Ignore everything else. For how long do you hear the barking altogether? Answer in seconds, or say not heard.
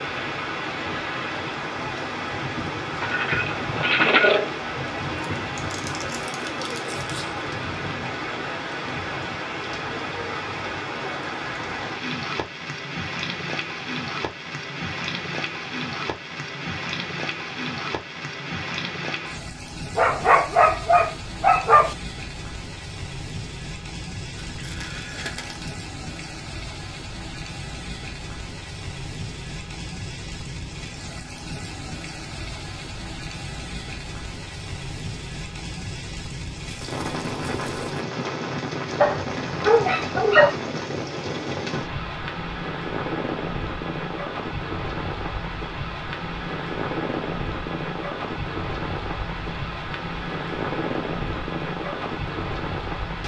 5 s.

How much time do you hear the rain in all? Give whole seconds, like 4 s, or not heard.
53 s.